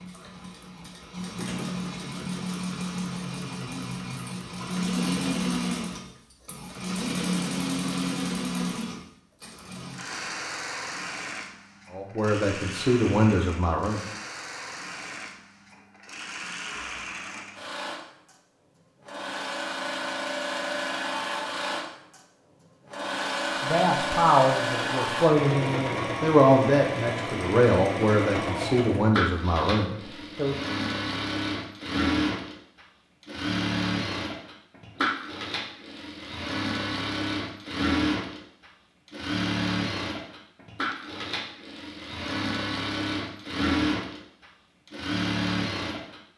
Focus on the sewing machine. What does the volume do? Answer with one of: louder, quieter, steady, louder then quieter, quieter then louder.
quieter then louder.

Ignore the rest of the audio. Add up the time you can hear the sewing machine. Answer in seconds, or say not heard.
46 s.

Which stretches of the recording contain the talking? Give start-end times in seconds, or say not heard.
11.9-14.0, 23.6-30.6.